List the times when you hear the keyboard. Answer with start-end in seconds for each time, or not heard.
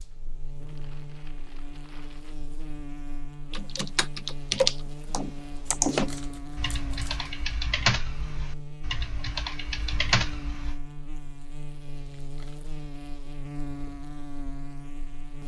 3.5-10.8.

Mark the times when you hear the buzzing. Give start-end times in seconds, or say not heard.
0.0-15.4.